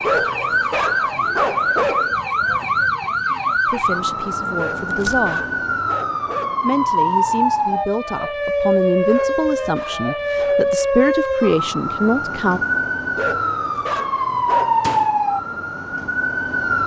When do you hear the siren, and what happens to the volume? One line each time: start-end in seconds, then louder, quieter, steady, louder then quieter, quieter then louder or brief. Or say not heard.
0.0-16.8 steady.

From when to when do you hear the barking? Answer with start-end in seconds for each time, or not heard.
0.0-2.1, 4.5-6.5, 9.1-10.9, 13.2-15.0.